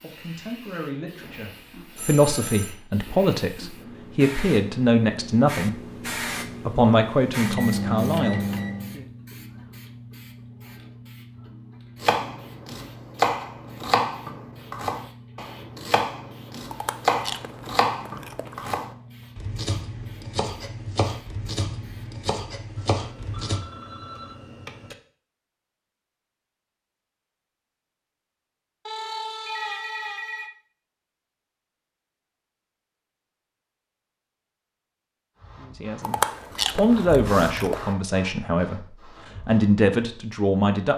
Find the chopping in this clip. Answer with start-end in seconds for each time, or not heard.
12.0-23.6.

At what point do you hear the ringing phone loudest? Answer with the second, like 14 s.
30 s.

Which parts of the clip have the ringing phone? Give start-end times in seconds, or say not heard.
1.9-2.8, 22.8-24.9, 28.9-30.5.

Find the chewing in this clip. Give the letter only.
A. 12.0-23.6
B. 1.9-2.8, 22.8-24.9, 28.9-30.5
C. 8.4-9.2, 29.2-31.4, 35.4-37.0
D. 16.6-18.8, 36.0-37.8
D.